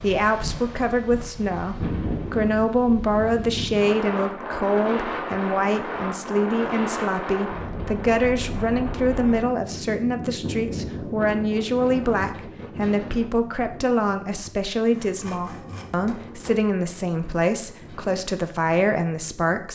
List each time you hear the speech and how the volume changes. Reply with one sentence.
You can hear the speech from 0.0 to 19.6 s, at a steady volume.